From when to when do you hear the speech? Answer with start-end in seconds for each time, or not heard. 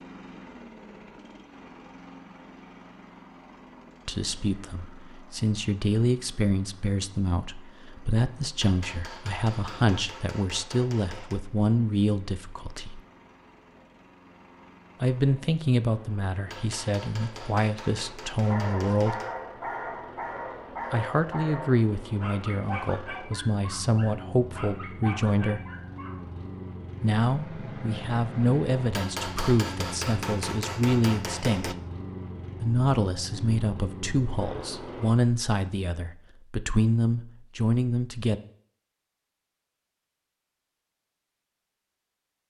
4.0-13.0, 15.0-19.1, 20.9-25.6, 27.0-31.8, 32.6-38.4.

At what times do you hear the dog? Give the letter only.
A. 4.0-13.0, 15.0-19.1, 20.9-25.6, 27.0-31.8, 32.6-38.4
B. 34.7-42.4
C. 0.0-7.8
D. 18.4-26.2
D.